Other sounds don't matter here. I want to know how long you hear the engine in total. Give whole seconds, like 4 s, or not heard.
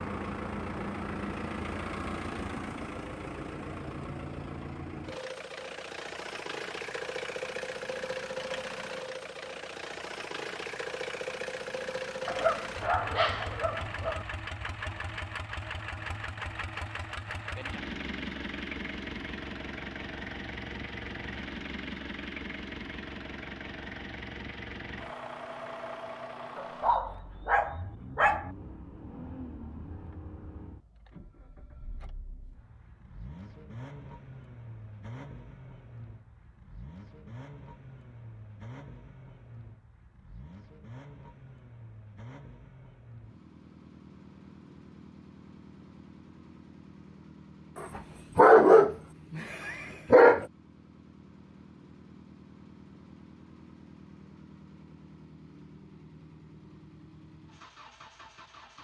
59 s.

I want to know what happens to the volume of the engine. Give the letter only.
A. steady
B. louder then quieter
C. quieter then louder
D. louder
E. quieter
E.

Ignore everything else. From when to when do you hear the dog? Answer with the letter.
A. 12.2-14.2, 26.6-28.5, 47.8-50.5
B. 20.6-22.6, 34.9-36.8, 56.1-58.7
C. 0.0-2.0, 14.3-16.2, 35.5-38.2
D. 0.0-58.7
A.